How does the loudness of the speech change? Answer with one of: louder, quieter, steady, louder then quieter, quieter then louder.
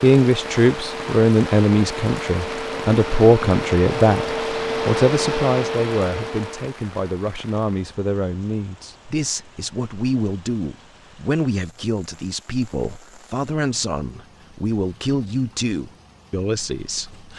quieter.